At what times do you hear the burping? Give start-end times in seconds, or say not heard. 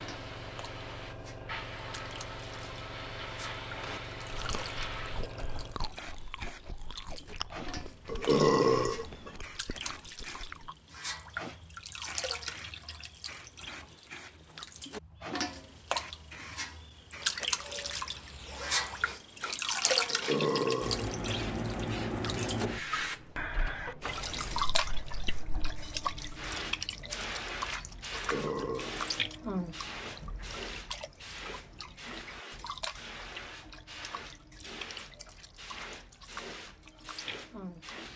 8.1-9.3, 20.1-21.1, 28.1-29.0.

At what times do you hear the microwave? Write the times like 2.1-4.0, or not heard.
not heard.